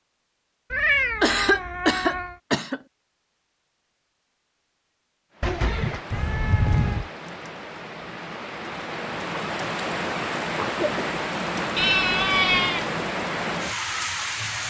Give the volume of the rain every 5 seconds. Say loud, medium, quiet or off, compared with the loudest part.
off, medium, loud.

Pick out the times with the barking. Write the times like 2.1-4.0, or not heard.
not heard.